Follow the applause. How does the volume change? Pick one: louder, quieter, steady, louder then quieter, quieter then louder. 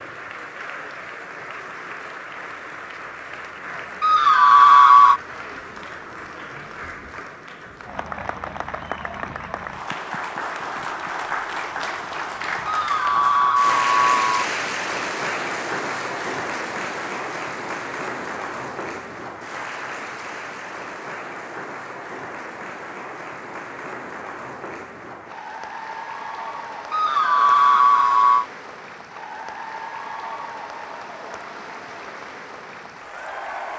louder then quieter.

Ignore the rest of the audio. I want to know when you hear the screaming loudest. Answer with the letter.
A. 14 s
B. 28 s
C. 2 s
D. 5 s
D.